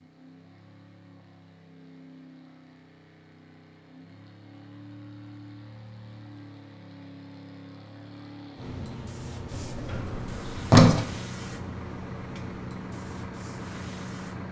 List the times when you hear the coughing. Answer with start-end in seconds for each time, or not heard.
not heard.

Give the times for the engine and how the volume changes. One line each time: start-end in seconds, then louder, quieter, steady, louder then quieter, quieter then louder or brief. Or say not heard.
0.0-14.4 louder.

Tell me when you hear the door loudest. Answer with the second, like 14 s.
11 s.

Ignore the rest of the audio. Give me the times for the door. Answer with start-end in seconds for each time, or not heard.
9.5-11.1.